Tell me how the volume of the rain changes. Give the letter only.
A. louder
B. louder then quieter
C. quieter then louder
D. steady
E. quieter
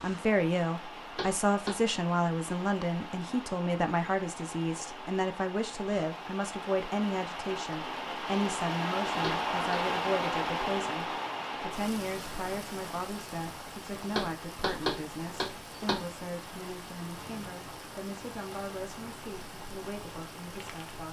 B.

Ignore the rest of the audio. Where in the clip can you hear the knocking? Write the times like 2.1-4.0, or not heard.
1.1-1.8, 9.2-9.8, 14.1-16.1.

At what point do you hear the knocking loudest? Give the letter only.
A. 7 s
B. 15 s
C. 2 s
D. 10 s
B.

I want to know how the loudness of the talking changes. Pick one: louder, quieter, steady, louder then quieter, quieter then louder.
quieter.